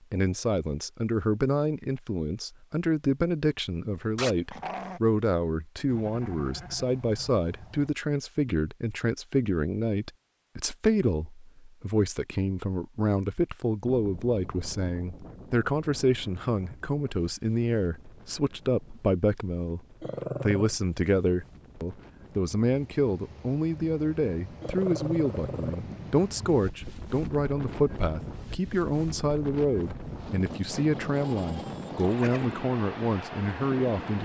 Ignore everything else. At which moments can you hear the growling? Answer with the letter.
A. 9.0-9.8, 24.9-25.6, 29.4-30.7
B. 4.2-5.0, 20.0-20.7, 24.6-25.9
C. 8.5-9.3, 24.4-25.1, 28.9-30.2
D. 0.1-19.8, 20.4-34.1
B.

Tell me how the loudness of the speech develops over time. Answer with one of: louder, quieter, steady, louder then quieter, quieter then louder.
steady.